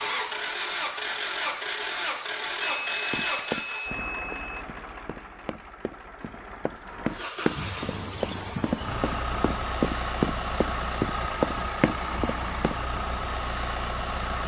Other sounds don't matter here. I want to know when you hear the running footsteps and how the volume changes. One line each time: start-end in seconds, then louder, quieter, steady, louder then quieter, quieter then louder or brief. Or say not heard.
3.1-12.8 quieter then louder.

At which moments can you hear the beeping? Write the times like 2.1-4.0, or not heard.
2.6-4.7.